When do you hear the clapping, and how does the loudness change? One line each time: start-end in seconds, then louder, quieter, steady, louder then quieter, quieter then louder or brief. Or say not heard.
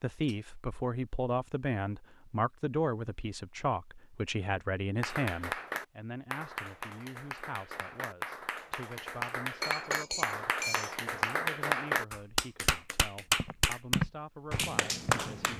5.0-15.5 louder.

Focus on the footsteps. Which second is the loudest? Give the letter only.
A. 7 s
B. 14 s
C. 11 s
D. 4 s
B.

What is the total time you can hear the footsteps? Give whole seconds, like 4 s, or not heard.
2 s.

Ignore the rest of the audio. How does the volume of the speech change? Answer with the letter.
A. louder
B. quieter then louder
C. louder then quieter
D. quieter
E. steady
D.